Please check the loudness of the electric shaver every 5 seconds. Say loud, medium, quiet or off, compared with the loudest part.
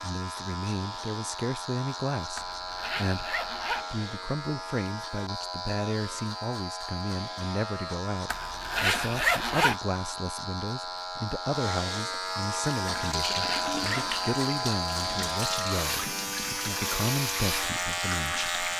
medium, medium, loud, loud.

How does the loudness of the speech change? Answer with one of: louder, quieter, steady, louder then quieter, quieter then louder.
steady.